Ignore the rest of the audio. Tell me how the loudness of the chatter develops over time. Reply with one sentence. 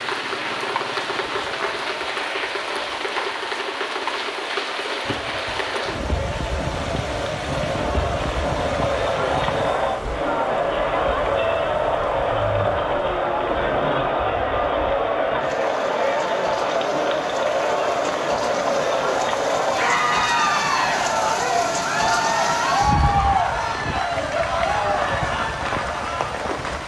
The loudness of the chatter goes up.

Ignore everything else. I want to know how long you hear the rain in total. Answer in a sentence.
You can hear the rain for 27 seconds altogether.